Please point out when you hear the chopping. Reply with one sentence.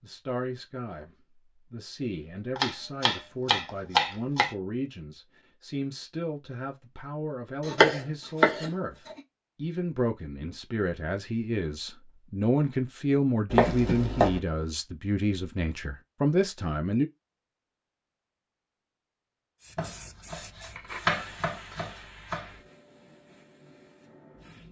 You can hear the chopping from 2.5 to 4.5 s, from 7.7 to 9.2 s, from 13.5 to 14.4 s and from 19.8 to 22.6 s.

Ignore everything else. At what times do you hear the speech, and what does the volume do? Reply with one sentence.
The speech can be heard from 0.0 to 17.1 s, getting louder.